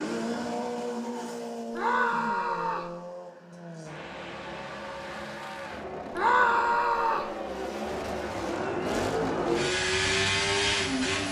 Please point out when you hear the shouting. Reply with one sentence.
You can hear the shouting from 1.7 to 2.9 s and from 6.1 to 7.3 s.